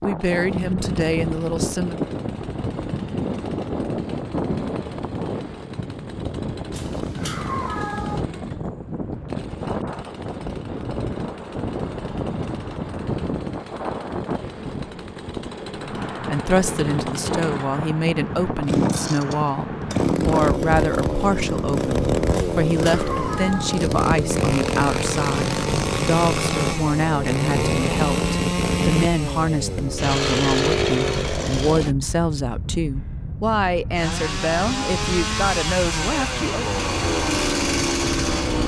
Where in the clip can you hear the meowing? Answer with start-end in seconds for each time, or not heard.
6.7-8.2, 22.3-23.9.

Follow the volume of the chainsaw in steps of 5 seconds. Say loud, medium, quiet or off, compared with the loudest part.
quiet, quiet, quiet, medium, loud, loud, loud, loud.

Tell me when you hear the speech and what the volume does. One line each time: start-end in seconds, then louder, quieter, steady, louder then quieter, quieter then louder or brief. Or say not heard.
0.0-2.0 brief
15.8-36.7 steady.